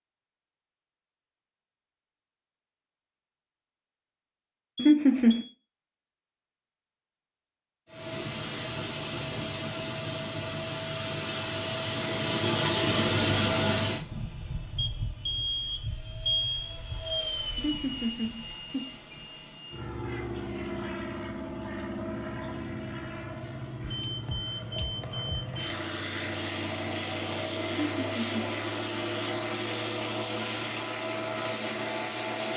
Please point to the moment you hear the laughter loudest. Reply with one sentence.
The volume of the laughter peaks at 5 seconds.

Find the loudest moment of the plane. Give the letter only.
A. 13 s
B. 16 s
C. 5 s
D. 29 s
A.